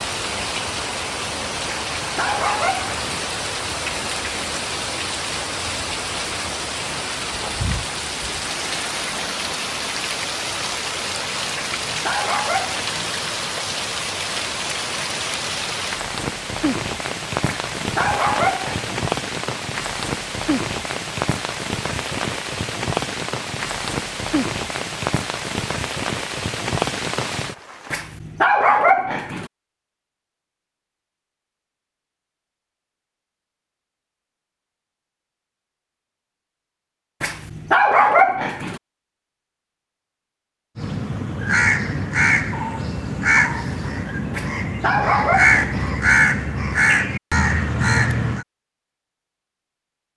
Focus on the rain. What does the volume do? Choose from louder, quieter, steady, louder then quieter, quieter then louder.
steady.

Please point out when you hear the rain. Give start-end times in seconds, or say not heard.
0.0-27.9.